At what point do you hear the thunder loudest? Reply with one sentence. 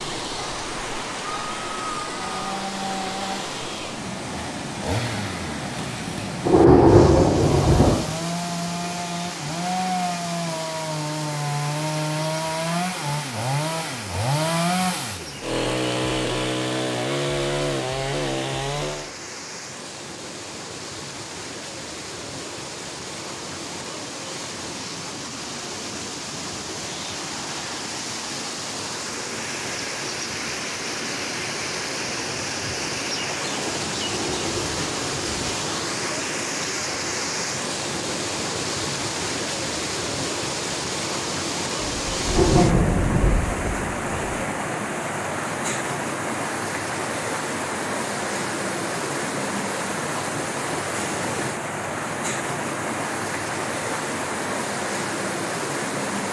The volume of the thunder peaks at 7 seconds.